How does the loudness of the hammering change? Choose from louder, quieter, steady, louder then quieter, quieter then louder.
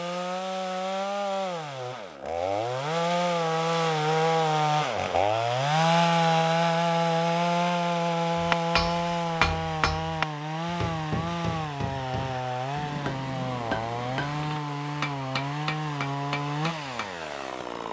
quieter.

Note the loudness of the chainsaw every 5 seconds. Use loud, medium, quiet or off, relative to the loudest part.
loud, loud, medium, medium.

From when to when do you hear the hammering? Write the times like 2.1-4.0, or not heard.
8.3-17.1.